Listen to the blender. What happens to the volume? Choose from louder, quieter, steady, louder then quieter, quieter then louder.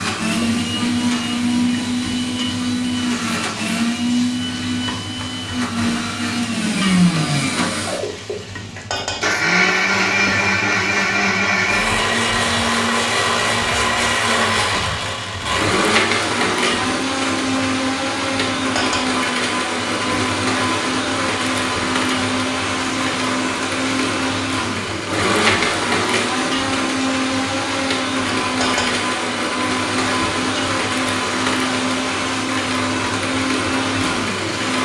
steady.